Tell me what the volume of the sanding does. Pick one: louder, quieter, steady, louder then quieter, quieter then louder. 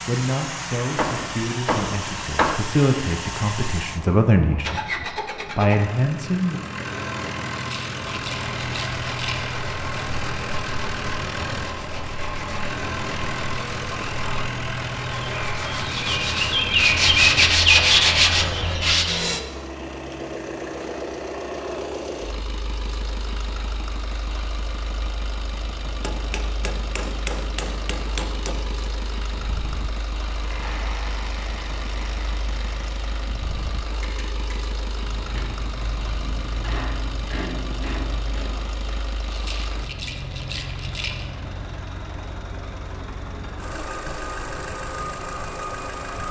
louder.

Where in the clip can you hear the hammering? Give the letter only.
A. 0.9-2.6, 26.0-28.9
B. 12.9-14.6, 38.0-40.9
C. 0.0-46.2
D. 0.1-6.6
A.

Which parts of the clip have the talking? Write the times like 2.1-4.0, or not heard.
0.1-6.6.